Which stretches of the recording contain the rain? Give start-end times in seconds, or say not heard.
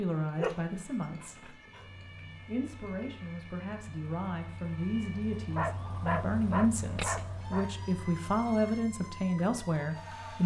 not heard.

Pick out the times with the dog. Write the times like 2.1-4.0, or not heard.
0.3-1.9, 5.5-7.7.